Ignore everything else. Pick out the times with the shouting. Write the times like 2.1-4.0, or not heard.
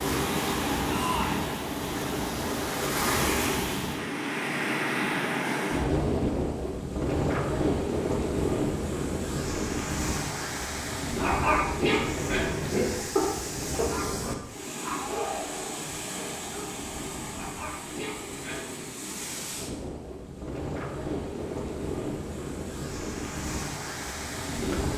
0.8-1.5, 15.0-15.8.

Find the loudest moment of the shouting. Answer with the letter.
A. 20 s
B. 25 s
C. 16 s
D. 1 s
D.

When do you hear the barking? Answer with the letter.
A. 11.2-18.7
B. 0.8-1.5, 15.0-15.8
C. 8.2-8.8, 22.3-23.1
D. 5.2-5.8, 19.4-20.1
A.